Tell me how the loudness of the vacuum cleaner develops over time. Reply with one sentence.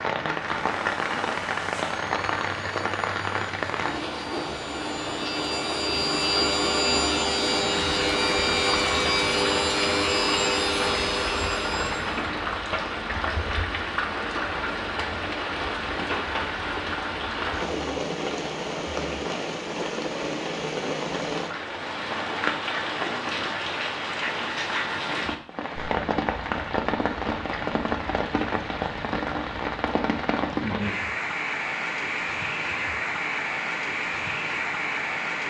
The loudness of the vacuum cleaner goes up.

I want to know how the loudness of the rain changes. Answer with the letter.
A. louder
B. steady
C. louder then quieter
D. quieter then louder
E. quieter
B.